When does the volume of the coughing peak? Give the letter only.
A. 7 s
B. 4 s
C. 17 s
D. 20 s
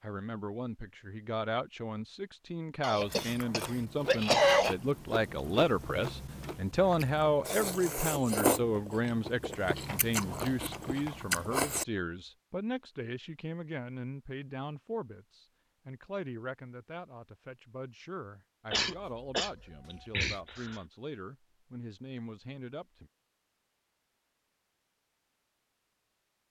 B.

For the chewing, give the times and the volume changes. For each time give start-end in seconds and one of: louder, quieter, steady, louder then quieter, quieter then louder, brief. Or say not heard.
3.0-11.8 louder.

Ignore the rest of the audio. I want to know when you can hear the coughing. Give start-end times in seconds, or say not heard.
2.8-4.8, 18.7-20.8.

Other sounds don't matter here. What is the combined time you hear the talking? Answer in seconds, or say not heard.
23 s.